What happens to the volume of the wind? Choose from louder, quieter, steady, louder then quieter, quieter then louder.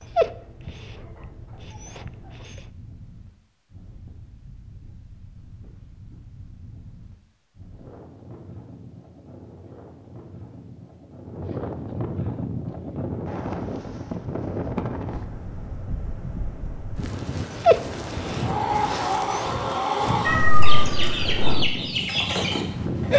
louder.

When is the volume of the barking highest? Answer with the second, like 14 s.
18 s.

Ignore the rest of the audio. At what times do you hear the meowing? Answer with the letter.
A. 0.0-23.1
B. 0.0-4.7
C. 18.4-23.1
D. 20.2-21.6
D.